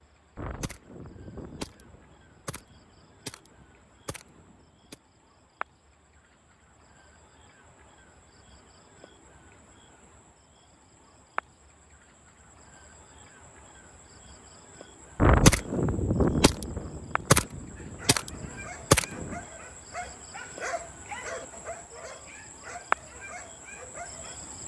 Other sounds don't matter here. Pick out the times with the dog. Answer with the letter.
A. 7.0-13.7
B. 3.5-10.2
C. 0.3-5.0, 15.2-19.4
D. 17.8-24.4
D.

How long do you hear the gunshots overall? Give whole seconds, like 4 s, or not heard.
9 s.